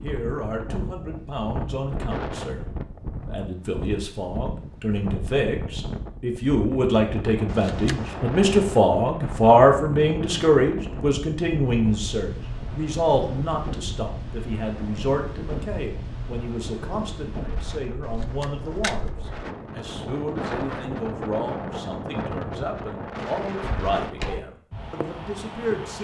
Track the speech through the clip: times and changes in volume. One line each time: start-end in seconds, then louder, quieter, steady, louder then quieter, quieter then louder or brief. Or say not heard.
0.0-25.9 louder then quieter.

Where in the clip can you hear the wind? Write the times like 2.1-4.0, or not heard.
0.0-25.9.